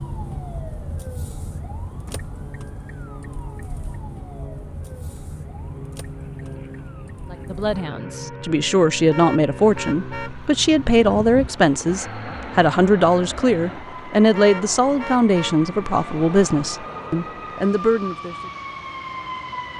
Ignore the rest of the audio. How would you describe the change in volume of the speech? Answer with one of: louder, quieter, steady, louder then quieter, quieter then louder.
steady.